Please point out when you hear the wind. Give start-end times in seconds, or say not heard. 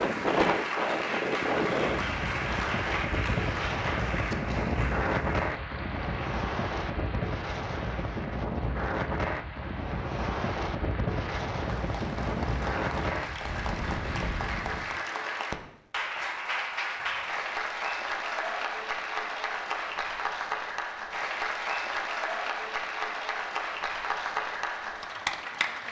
0.0-15.0.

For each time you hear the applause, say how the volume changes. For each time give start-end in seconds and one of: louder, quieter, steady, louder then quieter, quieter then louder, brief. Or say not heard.
0.0-25.8 quieter then louder.